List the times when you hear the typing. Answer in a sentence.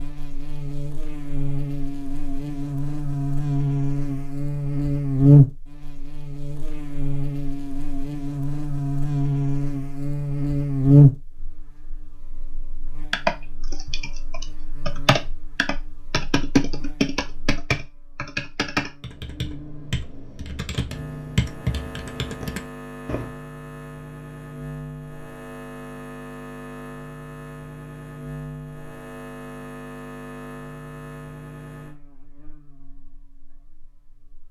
You can hear the typing from 13.1 to 23.3 s.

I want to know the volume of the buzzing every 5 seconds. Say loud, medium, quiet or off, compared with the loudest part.
medium, loud, loud, quiet, quiet, quiet, quiet.